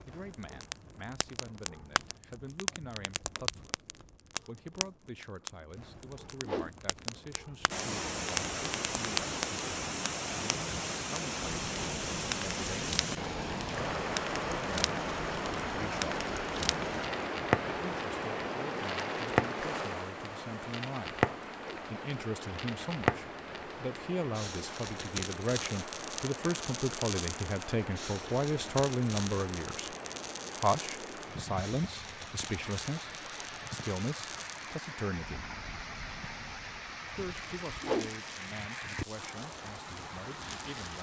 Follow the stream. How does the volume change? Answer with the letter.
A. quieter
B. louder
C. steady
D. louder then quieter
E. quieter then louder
A.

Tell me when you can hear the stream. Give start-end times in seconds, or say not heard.
7.7-40.9.